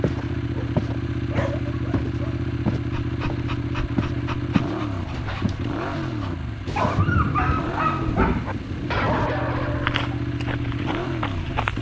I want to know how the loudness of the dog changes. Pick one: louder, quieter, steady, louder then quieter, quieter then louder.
louder.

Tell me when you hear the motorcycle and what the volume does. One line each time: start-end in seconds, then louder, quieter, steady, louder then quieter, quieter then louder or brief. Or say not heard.
0.0-11.7 steady.